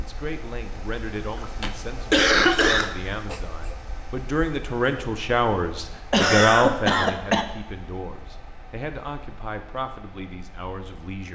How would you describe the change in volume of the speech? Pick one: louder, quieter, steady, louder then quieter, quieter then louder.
louder then quieter.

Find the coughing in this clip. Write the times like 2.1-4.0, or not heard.
1.2-3.8, 6.1-7.5.